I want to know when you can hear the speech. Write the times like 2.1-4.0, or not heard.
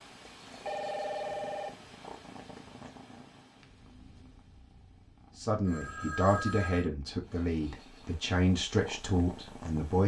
5.3-10.0.